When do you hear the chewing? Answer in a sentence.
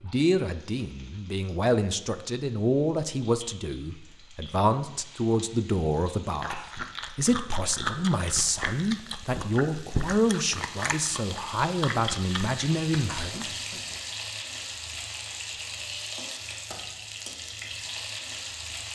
The chewing can be heard from 6.3 to 13.5 s.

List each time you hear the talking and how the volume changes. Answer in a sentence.
You can hear the talking from 0.0 to 13.8 s, at a steady volume.